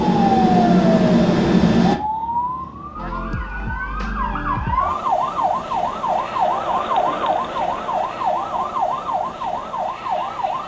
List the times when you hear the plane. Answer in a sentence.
The plane can be heard from 0.0 to 2.0 s.